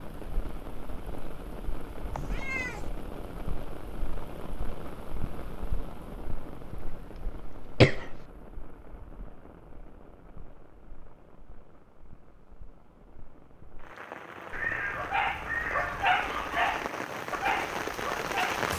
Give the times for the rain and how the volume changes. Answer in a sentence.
You can hear the rain from 0.0 to 18.7 s, getting quieter then louder.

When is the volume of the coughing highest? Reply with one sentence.
The volume of the coughing peaks at 8 seconds.